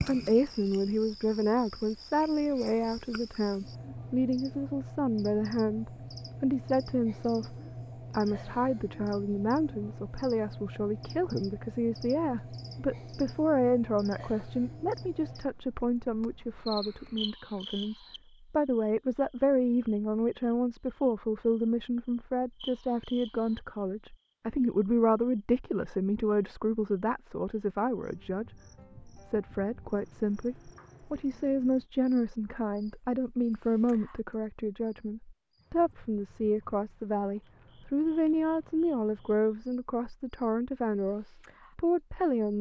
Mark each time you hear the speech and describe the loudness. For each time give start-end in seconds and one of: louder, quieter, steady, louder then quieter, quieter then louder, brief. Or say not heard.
0.1-42.5 steady.